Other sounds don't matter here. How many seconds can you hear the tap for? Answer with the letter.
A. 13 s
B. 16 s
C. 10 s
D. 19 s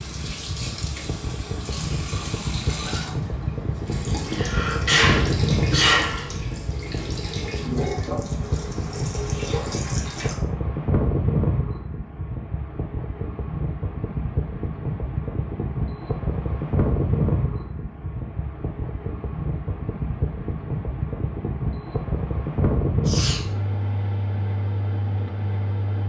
C.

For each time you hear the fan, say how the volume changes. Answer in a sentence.
You can hear the fan from 0.0 to 26.0 s, at a steady volume.